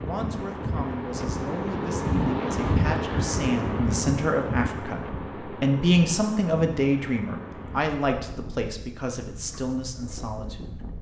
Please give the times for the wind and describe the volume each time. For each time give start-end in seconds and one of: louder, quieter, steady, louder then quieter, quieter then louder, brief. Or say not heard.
0.0-10.9 quieter.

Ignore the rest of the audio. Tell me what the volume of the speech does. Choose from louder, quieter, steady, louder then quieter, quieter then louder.
louder then quieter.